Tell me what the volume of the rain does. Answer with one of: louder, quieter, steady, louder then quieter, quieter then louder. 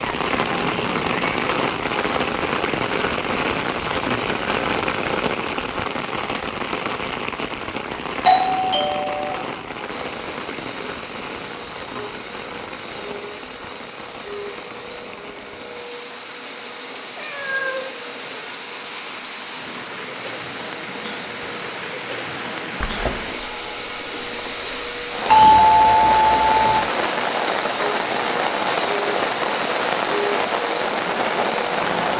quieter then louder.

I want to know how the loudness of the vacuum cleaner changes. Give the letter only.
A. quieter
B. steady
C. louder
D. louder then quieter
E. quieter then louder
C.